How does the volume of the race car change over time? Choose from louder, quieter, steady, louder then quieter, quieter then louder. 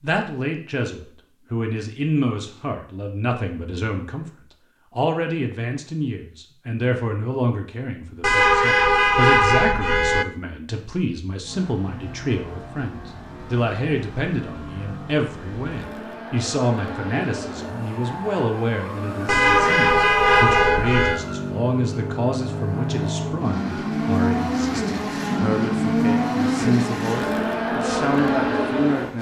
louder.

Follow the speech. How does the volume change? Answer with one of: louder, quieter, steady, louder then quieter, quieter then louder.
steady.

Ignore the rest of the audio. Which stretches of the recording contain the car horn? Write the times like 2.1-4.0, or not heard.
8.2-10.2, 19.2-21.2.